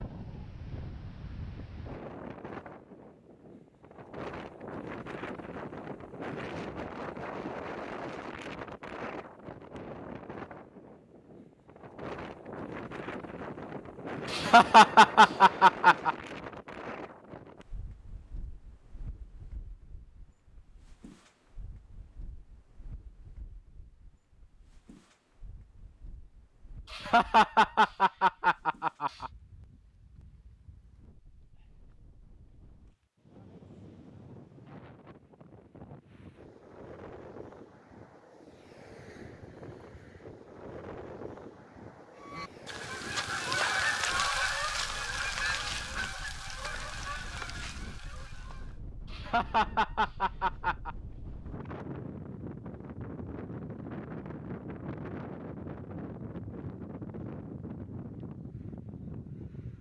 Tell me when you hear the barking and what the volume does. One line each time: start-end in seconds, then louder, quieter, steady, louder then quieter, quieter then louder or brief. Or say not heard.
not heard.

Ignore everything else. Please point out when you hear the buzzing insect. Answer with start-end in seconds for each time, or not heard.
not heard.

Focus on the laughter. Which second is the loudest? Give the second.
15 s.